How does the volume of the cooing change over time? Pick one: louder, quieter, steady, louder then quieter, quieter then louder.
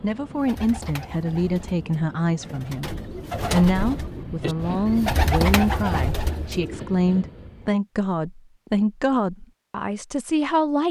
louder.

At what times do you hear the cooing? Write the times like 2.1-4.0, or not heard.
0.3-6.8.